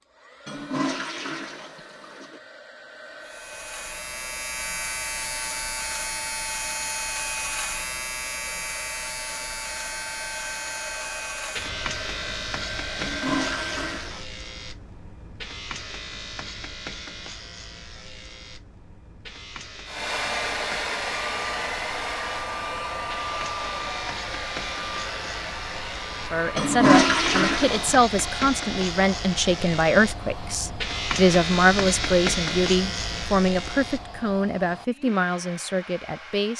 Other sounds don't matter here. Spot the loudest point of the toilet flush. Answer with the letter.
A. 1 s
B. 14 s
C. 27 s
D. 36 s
C.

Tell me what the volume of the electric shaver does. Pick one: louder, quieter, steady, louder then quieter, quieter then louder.
quieter then louder.